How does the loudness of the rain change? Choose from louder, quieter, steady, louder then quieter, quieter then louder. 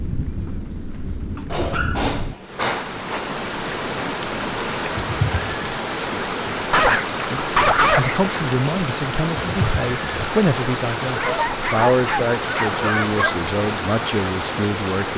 louder.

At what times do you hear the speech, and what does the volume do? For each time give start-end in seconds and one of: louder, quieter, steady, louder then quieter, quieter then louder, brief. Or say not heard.
7.3-15.1 steady.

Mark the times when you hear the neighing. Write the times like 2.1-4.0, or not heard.
5.0-5.7, 9.3-10.2.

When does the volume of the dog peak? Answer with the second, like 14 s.
8 s.